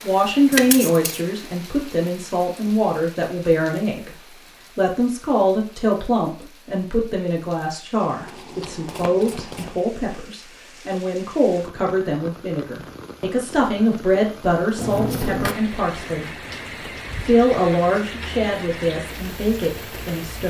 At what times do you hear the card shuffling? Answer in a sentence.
The card shuffling can be heard from 0.5 to 1.2 s, from 8.2 to 9.8 s and from 14.8 to 15.6 s.